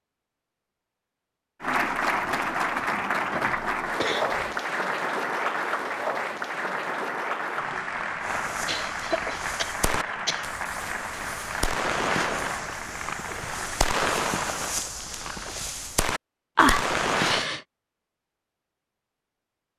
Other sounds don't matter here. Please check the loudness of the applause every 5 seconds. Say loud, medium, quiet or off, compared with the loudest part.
loud, loud, medium, off.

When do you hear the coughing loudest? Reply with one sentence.
The volume of the coughing peaks at 17 seconds.